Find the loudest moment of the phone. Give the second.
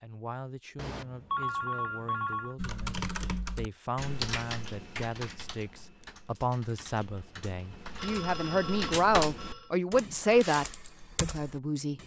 1 s.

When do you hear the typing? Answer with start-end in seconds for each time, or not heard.
2.5-12.0.